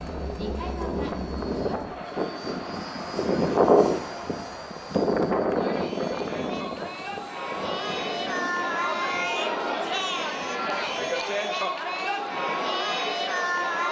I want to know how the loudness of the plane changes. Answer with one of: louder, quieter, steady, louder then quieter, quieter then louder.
louder then quieter.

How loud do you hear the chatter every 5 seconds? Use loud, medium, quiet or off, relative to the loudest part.
medium, loud, loud.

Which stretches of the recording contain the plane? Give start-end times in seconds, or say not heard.
0.0-11.2.